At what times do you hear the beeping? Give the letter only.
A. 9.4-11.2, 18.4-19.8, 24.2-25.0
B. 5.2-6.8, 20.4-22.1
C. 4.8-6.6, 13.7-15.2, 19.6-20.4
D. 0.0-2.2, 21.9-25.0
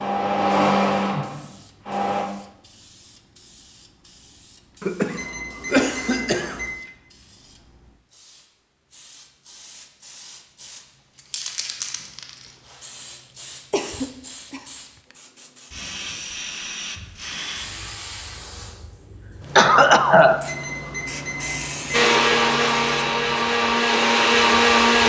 B.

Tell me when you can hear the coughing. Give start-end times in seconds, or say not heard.
4.8-6.6, 13.7-15.2, 19.6-20.4.